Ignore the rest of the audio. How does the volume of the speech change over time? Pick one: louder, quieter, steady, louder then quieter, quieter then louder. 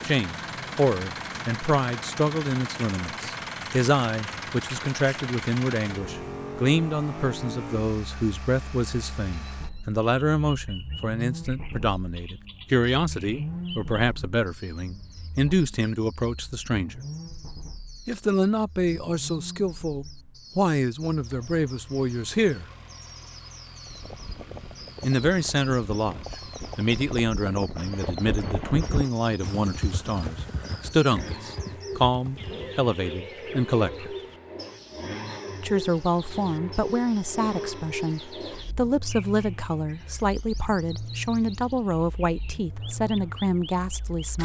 steady.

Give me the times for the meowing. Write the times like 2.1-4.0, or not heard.
not heard.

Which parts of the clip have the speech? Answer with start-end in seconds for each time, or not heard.
0.0-17.0, 18.1-22.6, 25.0-34.1, 35.6-44.3.